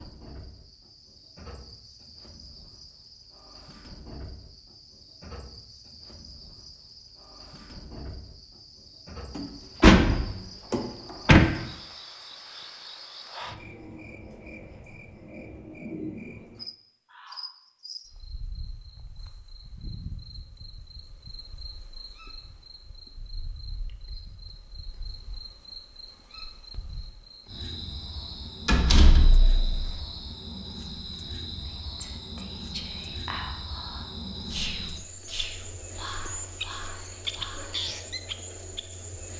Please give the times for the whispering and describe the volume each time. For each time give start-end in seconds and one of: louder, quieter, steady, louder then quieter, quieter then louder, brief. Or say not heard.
31.6-37.8 louder then quieter.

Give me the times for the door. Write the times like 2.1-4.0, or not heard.
9.3-11.4, 28.6-29.9.